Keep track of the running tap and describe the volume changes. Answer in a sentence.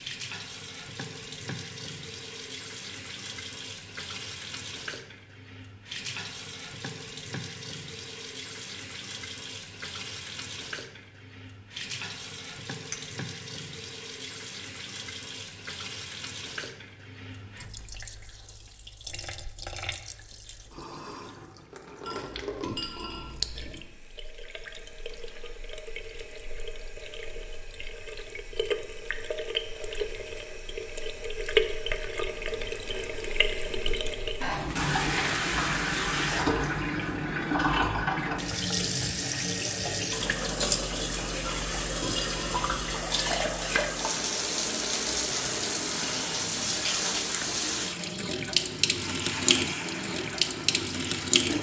The volume of the running tap goes up.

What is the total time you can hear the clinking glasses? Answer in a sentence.
You can hear the clinking glasses for 3 seconds altogether.